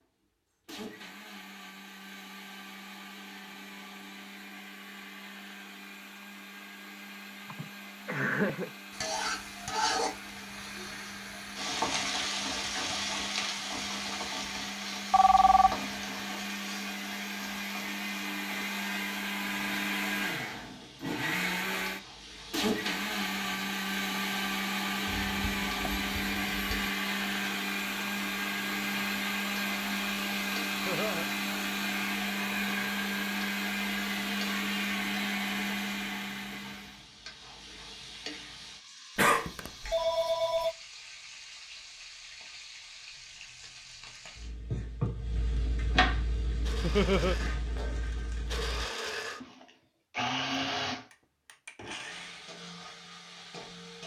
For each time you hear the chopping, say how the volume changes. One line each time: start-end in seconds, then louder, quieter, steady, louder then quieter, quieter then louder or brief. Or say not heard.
not heard.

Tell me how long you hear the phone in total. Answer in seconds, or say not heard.
4 s.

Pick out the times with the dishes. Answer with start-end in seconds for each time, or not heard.
not heard.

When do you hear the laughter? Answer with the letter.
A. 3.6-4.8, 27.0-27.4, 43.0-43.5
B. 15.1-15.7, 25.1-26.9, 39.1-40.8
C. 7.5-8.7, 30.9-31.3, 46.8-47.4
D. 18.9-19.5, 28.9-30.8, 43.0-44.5
C.